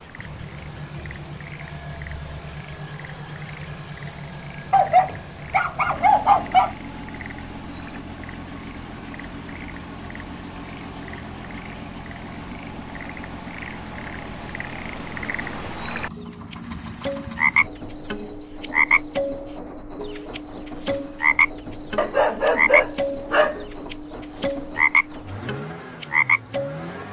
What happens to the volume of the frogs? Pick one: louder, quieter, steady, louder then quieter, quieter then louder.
louder.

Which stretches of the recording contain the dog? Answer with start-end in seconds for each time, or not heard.
4.7-6.7, 21.9-23.6.